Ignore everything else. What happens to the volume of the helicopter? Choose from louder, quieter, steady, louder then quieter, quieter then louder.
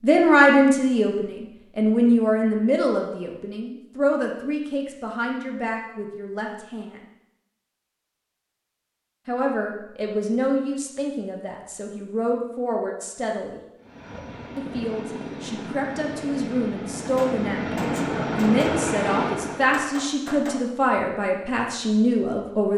louder.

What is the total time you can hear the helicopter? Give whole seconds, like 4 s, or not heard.
6 s.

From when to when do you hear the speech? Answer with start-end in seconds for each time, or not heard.
0.0-7.0, 9.2-13.6, 14.6-22.7.